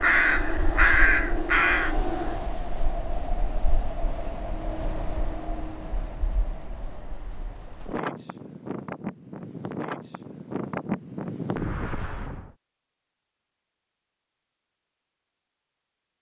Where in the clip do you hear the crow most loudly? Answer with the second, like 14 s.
1 s.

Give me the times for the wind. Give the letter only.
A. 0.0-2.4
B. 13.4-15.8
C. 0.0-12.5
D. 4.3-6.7
C.